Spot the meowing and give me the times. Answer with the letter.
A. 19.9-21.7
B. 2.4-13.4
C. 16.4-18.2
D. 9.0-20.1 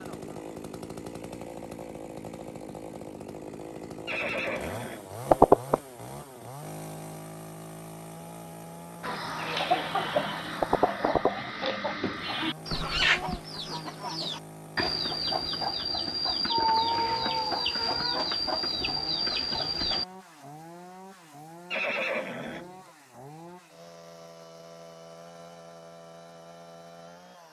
C.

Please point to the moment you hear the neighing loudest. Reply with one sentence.
The loudest moment of the neighing is at 5 seconds.